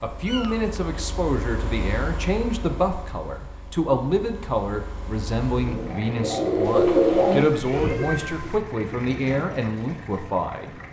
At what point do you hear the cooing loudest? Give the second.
7 s.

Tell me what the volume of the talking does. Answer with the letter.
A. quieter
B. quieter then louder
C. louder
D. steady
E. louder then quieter
D.